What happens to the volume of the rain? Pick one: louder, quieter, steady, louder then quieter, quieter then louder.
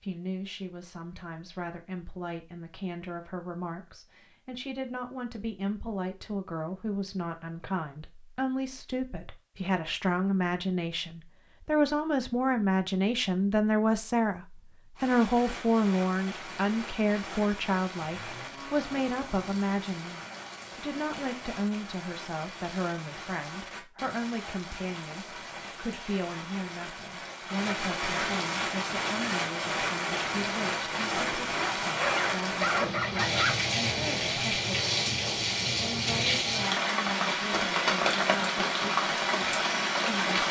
louder.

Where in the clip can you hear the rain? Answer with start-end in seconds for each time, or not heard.
14.9-40.4.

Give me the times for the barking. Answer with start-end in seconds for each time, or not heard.
31.6-33.5.